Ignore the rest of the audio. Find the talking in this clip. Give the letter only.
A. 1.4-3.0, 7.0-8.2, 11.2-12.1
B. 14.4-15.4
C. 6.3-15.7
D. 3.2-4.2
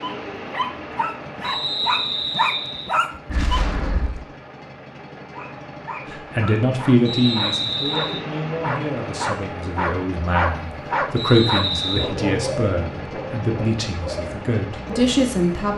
C.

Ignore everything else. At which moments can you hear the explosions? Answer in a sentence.
The explosions can be heard from 3.2 to 4.2 s.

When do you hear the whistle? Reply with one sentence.
You can hear the whistle from 1.4 to 3.0 s, from 7.0 to 8.2 s and from 11.2 to 12.1 s.